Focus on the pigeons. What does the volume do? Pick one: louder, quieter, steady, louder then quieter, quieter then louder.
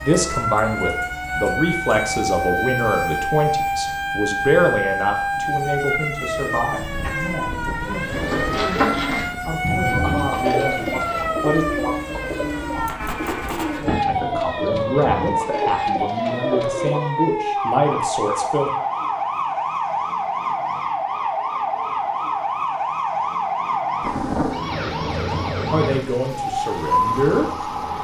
quieter.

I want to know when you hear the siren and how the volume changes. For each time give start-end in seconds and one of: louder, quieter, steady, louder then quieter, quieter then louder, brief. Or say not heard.
0.0-27.9 steady.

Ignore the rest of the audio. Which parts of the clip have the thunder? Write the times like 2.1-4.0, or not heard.
24.0-24.6.